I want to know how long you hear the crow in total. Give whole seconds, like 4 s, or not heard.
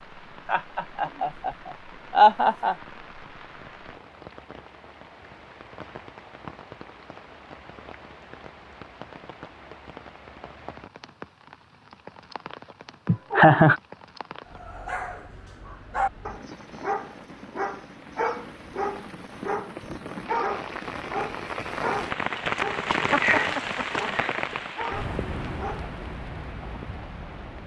not heard.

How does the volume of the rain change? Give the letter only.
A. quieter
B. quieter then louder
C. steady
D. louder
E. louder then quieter
D.